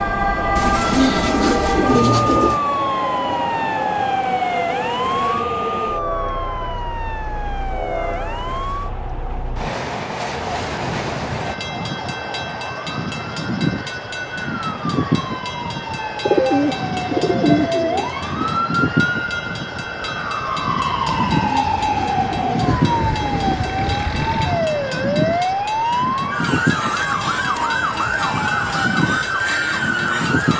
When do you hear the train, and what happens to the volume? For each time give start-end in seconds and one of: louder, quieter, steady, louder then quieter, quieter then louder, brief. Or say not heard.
0.0-30.5 steady.